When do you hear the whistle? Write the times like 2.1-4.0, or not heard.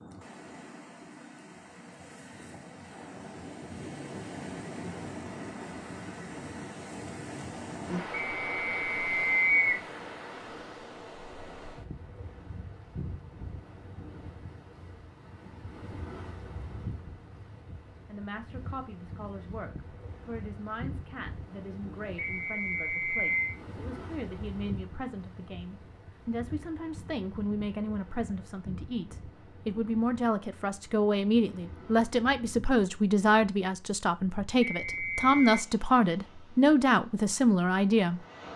8.3-9.8, 22.1-23.6, 34.6-35.6.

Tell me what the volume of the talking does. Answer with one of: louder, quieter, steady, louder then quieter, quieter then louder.
louder.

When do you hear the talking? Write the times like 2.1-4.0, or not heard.
18.1-38.2.